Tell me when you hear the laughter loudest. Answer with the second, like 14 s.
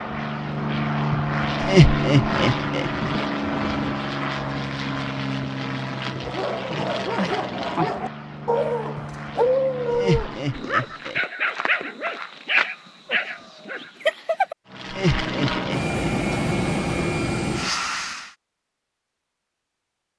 2 s.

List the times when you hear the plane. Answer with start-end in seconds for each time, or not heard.
0.0-11.1, 14.7-18.4.